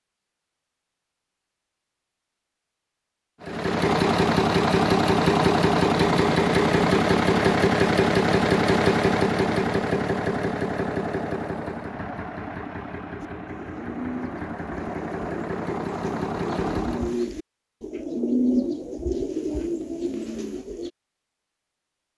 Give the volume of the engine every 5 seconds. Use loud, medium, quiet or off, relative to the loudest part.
loud, loud, medium, medium, off.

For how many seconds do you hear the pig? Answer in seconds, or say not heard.
not heard.